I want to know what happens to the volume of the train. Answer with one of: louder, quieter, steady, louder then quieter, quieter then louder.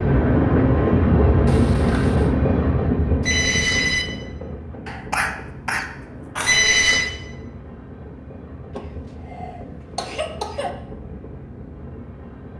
quieter.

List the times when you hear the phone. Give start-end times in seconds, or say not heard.
3.2-4.0, 6.5-7.1.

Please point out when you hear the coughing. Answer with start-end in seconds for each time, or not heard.
1.4-2.4, 4.8-6.7, 8.8-10.7.